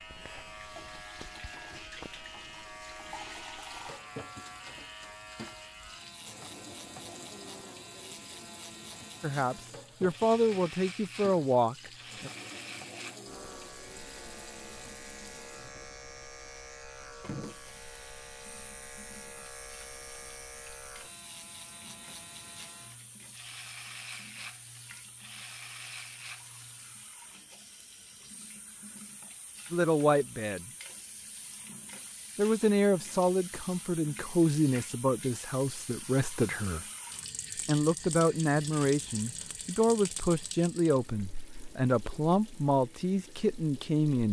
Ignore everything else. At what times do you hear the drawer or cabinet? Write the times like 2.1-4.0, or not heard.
not heard.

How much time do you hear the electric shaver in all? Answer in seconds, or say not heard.
27 s.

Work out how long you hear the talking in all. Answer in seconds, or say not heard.
15 s.